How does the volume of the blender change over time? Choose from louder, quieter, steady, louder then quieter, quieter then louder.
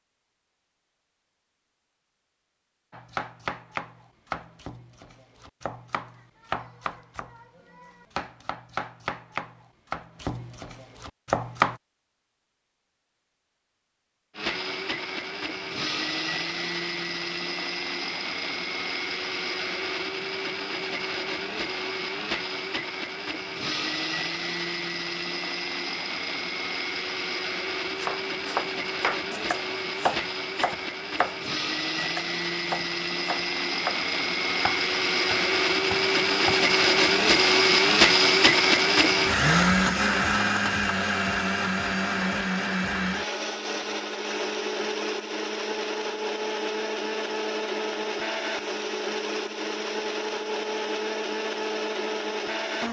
louder then quieter.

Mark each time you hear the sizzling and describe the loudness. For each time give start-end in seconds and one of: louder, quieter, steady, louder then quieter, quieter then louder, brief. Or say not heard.
not heard.